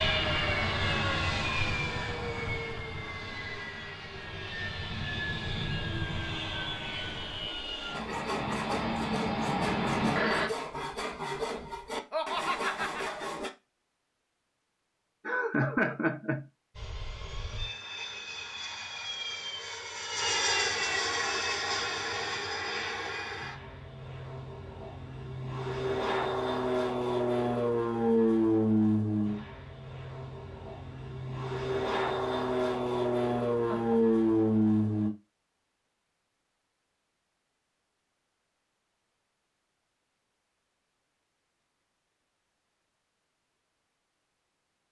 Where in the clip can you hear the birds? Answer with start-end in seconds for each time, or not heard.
not heard.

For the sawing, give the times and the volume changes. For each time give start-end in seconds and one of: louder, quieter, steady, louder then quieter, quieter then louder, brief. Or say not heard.
7.9-13.5 steady.